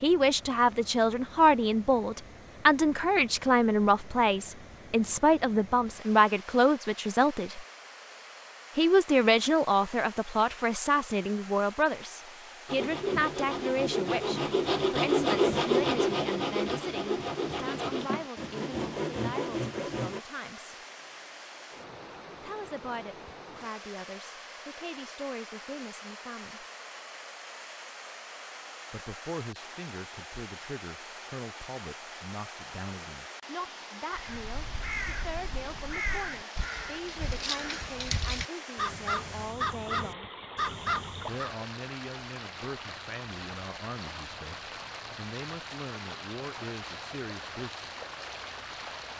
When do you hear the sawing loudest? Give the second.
15 s.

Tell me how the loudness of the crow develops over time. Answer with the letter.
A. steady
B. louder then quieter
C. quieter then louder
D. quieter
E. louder
E.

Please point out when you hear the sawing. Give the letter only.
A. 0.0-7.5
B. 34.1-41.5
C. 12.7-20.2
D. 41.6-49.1
C.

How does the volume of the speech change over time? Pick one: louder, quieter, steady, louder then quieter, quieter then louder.
quieter.